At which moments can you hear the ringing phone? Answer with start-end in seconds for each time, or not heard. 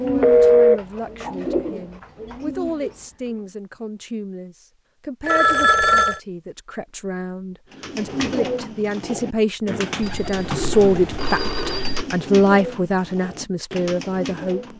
0.2-0.8, 5.2-6.2, 10.0-12.1.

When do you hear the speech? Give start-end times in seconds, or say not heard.
0.0-14.7.